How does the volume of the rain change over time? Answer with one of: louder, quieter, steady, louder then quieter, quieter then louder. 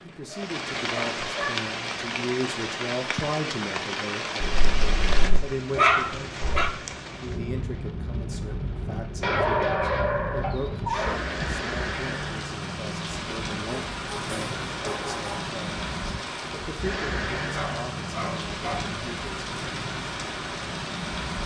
steady.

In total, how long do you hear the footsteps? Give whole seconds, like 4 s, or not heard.
not heard.